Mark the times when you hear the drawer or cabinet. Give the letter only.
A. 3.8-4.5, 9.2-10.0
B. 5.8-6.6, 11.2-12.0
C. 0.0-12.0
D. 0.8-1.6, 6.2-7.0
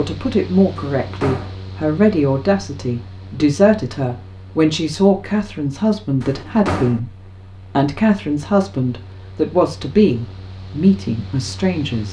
D.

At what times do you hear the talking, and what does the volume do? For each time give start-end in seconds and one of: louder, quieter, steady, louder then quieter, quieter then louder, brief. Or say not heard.
0.0-12.0 steady.